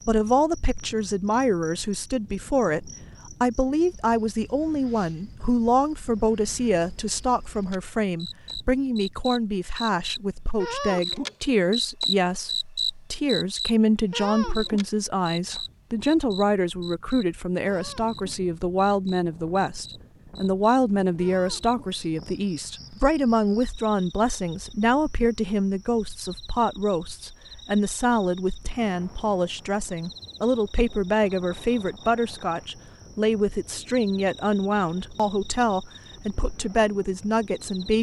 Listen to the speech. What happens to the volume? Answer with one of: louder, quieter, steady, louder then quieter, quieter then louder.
steady.